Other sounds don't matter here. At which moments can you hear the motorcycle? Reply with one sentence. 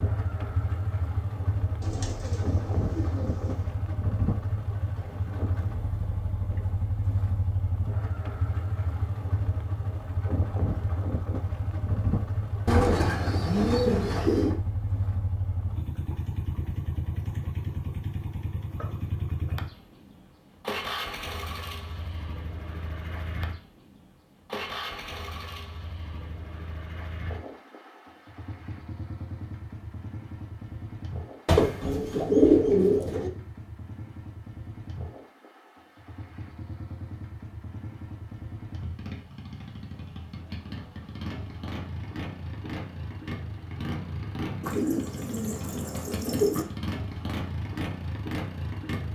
You can hear the motorcycle from 0.0 to 49.1 s.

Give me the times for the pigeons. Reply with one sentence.
The pigeons can be heard from 1.8 to 3.8 s, from 12.7 to 14.6 s, from 31.4 to 33.3 s and from 44.6 to 46.6 s.